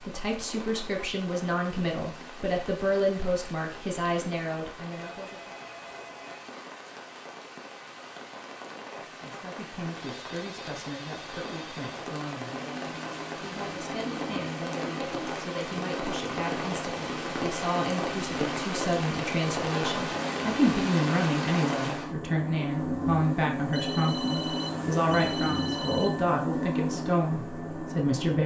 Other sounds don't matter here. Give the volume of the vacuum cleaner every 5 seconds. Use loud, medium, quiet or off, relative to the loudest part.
off, off, medium, medium, loud, loud.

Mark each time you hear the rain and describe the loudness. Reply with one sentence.
The rain can be heard from 0.0 to 22.1 s, getting louder.